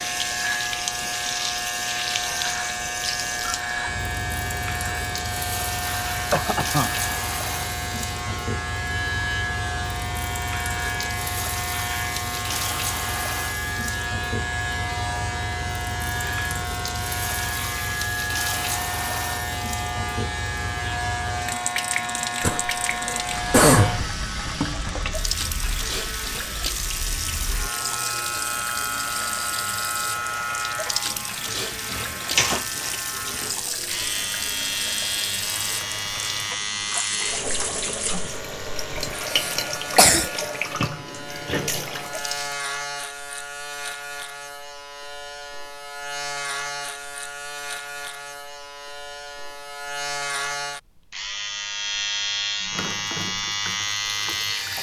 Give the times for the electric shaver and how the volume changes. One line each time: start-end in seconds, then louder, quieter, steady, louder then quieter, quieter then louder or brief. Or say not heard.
0.0-54.7 steady.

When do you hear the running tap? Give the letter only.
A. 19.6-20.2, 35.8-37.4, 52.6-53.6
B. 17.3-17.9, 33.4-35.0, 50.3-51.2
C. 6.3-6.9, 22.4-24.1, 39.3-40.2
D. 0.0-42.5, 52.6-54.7
D.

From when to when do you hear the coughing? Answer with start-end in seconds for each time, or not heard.
6.3-6.9, 22.4-24.1, 39.3-40.2.